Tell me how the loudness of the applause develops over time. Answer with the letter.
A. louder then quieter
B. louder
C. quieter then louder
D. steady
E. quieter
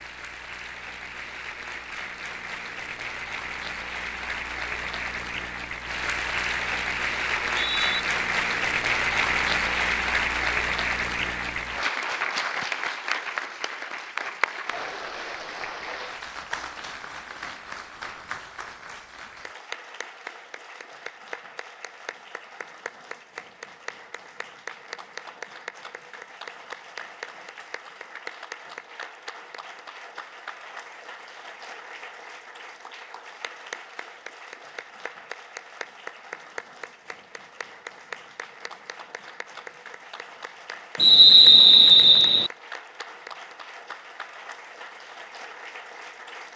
E.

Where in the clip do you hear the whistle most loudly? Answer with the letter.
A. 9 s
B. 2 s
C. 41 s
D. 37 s
C.